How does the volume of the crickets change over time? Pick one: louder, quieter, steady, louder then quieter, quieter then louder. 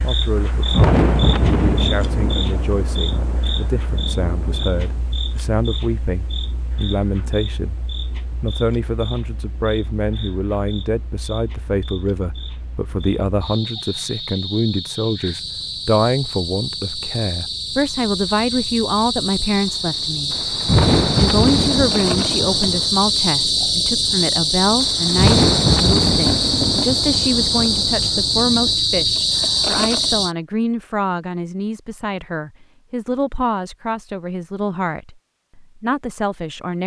quieter then louder.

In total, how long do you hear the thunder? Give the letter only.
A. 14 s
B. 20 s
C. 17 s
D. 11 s
D.